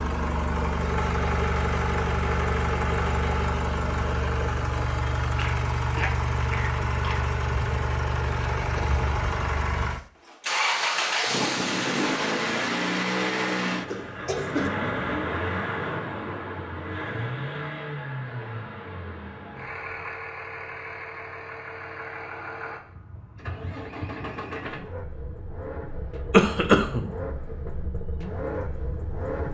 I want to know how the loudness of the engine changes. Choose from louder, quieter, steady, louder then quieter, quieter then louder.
quieter.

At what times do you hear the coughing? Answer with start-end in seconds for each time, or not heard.
5.3-7.2, 13.8-14.7, 26.3-27.1.